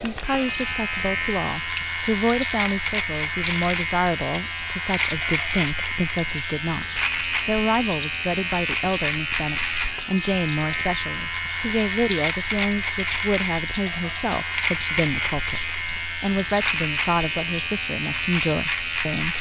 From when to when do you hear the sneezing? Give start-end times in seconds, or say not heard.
not heard.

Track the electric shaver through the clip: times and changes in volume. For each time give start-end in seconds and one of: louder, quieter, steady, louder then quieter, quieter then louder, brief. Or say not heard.
0.0-19.3 steady.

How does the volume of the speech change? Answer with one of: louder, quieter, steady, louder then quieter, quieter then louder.
steady.